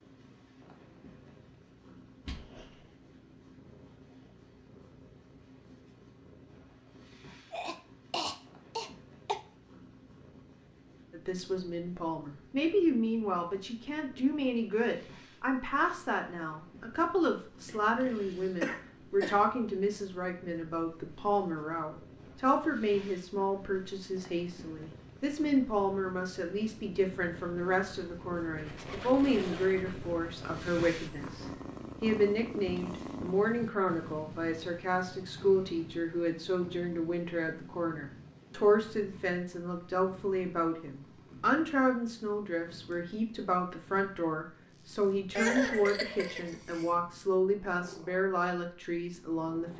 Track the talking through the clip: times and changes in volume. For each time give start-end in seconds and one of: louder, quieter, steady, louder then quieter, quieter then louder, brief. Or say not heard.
11.1-49.7 steady.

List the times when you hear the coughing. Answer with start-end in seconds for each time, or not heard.
7.5-9.4, 17.6-19.4, 45.4-46.9.